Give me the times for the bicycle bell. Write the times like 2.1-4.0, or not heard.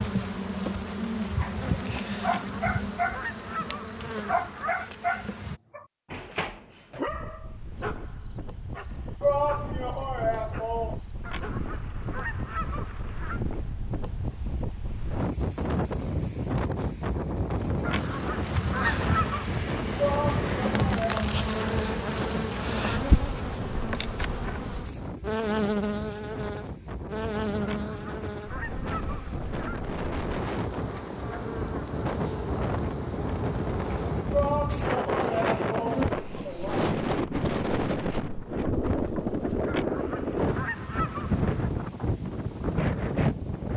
not heard.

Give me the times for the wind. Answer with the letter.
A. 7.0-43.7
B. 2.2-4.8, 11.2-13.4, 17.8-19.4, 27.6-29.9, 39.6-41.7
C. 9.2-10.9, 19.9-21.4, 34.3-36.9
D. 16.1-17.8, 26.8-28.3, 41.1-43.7
A.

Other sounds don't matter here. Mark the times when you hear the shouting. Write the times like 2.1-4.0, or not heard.
9.2-10.9, 19.9-21.4, 34.3-36.9.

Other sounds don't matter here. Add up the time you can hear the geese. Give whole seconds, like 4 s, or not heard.
11 s.